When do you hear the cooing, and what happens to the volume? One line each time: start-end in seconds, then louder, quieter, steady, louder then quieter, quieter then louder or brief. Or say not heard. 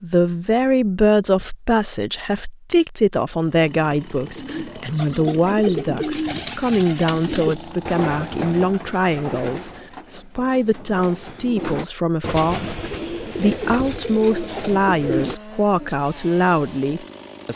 4.3-15.9 quieter then louder.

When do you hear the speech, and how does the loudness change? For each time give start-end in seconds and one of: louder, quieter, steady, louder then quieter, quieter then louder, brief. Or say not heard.
0.0-12.6 steady
13.3-17.5 steady.